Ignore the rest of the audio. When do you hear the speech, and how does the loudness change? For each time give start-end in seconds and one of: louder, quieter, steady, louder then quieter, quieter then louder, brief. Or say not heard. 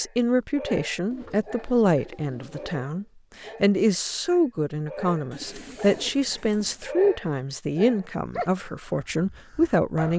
0.0-10.1 steady.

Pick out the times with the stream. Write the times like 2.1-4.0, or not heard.
not heard.